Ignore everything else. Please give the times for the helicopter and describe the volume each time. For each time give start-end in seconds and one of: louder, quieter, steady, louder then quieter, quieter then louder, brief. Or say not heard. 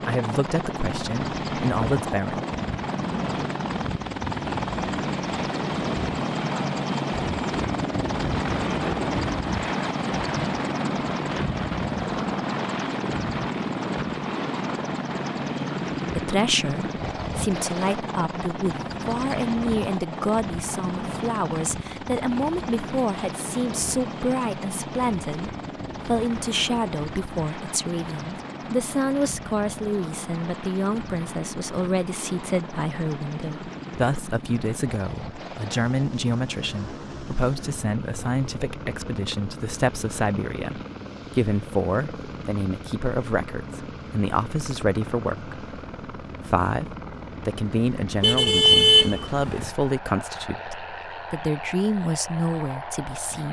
0.0-53.4 quieter.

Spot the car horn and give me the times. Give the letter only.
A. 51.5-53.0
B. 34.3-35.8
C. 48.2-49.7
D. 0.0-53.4
C.